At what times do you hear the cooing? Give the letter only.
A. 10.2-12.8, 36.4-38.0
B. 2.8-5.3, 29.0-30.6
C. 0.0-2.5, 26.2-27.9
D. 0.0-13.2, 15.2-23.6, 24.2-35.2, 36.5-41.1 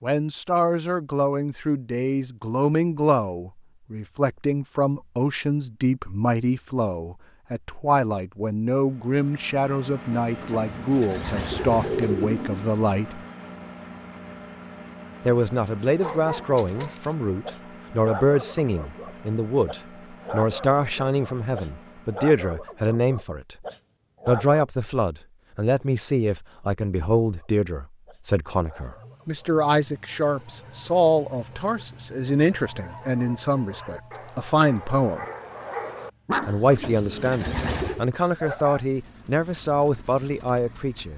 A.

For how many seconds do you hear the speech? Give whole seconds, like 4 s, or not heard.
37 s.